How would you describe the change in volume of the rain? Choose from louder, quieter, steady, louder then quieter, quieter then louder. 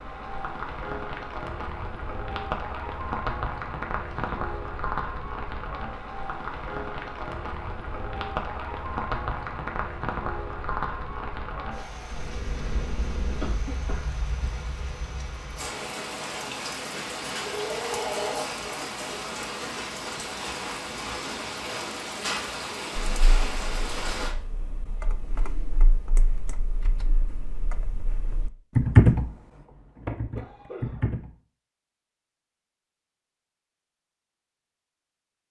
steady.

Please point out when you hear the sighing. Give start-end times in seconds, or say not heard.
not heard.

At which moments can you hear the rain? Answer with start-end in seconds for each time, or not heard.
0.0-24.4.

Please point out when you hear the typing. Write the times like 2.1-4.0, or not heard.
23.2-29.3, 29.9-31.3.